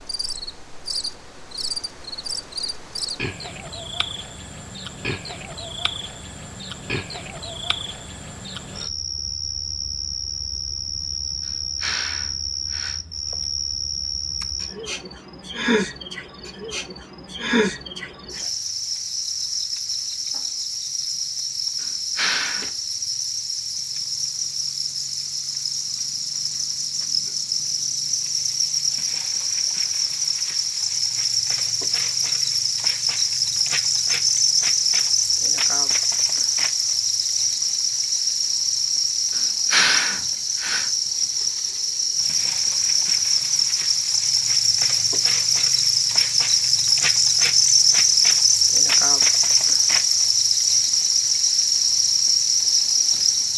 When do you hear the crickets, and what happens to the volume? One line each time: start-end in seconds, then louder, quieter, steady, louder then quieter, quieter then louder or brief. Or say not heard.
0.0-53.5 louder.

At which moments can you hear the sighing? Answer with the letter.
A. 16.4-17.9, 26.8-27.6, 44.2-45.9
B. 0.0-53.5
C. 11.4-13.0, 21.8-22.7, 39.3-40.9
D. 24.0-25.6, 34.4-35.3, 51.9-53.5
C.